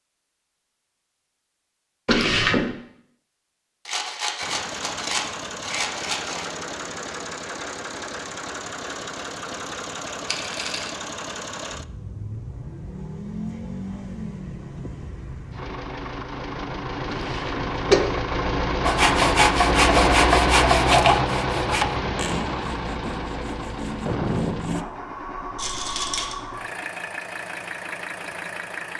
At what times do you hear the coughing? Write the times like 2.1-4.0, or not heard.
2.0-2.7, 17.1-18.0.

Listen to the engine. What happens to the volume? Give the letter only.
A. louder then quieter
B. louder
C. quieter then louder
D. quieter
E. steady
A.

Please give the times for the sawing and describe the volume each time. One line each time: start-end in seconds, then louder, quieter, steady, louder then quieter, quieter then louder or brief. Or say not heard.
18.9-24.9 quieter then louder.